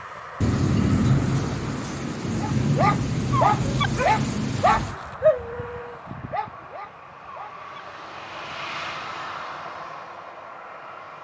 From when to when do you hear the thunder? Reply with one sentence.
The thunder can be heard from 0.4 to 5.0 s.